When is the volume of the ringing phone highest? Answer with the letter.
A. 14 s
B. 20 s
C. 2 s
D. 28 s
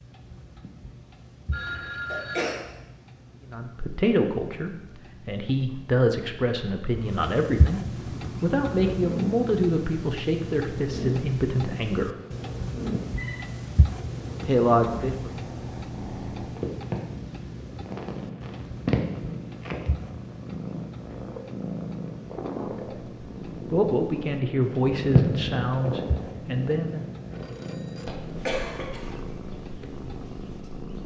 C.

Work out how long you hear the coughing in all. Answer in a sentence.
You can hear the coughing for 2 seconds altogether.